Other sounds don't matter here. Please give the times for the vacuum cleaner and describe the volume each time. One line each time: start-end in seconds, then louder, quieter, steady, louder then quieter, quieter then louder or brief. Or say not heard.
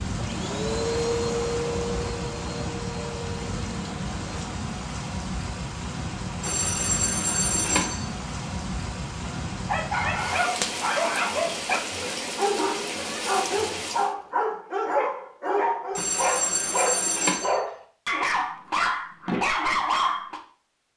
0.1-4.7 quieter.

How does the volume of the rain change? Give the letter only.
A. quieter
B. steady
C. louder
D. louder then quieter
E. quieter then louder
B.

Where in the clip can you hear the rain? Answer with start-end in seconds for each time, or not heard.
0.0-14.2.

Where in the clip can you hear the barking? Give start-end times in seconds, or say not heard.
9.5-20.4.